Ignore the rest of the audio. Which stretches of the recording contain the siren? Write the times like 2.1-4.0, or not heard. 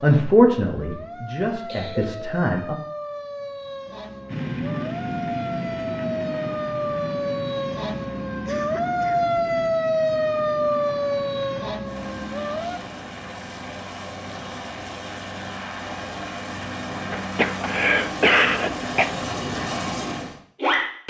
0.0-12.8.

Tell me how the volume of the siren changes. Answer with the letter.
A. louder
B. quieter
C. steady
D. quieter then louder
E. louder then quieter
A.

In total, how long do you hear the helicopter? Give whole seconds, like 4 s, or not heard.
17 s.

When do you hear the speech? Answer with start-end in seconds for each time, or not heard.
0.0-2.8.